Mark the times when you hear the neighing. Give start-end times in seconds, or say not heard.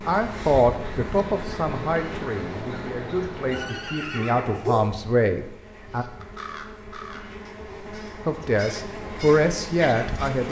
3.5-4.9.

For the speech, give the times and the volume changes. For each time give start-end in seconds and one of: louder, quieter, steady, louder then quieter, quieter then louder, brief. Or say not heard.
0.1-6.0 quieter then louder
8.2-10.4 brief.